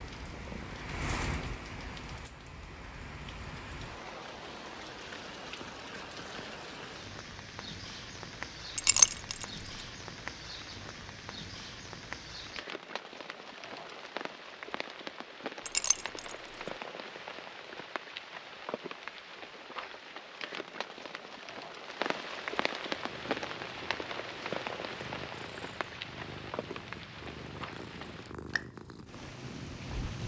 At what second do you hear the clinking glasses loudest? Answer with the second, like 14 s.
9 s.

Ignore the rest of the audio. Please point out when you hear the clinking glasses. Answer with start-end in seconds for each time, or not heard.
8.8-9.4, 15.7-16.4.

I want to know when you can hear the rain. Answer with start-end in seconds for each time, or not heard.
0.0-30.2.